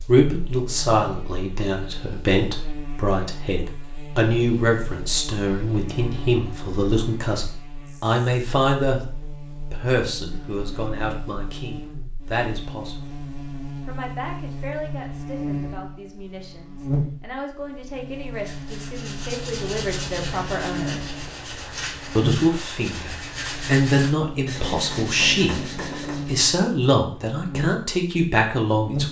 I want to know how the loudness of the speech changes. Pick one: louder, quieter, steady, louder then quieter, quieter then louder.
quieter then louder.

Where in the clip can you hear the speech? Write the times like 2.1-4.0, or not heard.
0.1-9.0, 9.7-13.2, 13.8-21.0, 22.1-29.0.